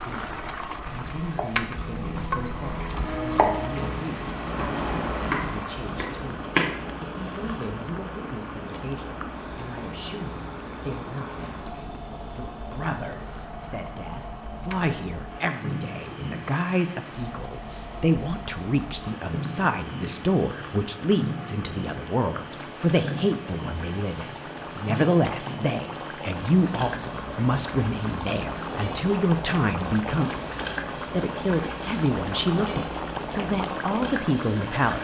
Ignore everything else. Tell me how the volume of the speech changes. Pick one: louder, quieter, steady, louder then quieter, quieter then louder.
louder.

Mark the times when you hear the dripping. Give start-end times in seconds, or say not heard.
not heard.